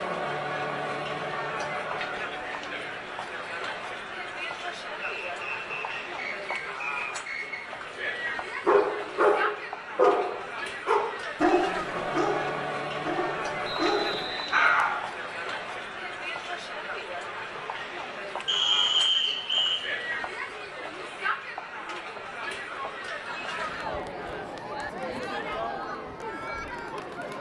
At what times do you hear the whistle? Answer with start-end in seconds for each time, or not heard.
5.0-7.7, 13.6-14.7, 18.4-19.9.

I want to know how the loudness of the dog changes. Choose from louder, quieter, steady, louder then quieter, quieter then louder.
quieter then louder.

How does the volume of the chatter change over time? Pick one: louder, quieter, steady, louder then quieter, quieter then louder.
steady.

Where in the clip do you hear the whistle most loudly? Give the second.
19 s.